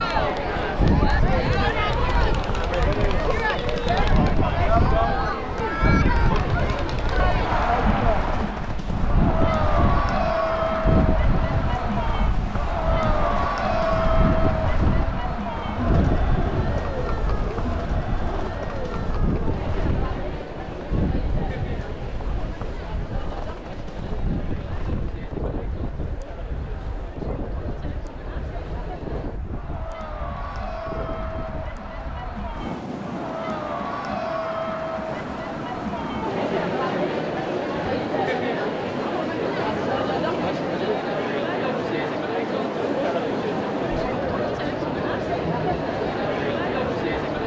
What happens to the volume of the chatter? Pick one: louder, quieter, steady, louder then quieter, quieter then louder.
quieter then louder.